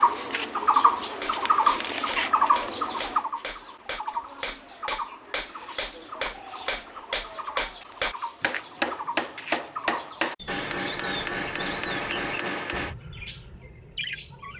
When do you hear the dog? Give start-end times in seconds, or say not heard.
not heard.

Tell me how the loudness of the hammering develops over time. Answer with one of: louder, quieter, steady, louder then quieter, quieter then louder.
louder.